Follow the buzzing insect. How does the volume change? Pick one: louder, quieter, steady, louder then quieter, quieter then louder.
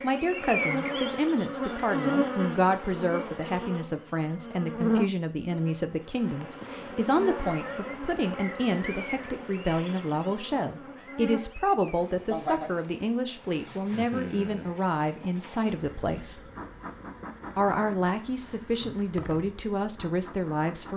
quieter.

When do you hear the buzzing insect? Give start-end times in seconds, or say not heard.
0.0-20.9.